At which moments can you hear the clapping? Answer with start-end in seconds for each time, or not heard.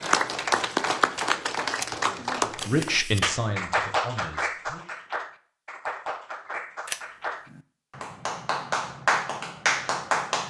0.0-10.4.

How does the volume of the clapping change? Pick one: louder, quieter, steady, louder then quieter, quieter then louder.
quieter then louder.